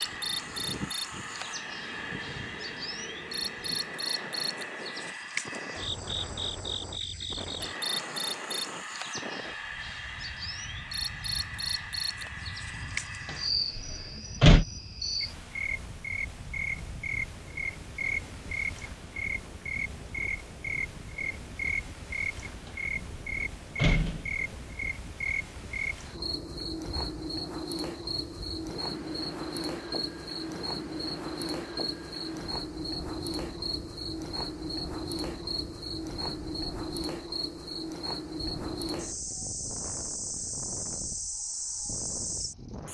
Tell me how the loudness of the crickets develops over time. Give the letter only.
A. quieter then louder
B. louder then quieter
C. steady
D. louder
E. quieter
C.